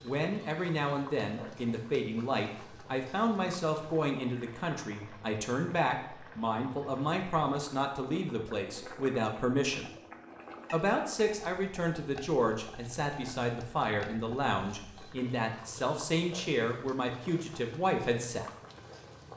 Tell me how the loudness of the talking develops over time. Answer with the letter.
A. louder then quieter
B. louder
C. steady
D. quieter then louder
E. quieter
C.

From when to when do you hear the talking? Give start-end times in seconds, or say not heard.
0.0-9.9, 10.7-18.4.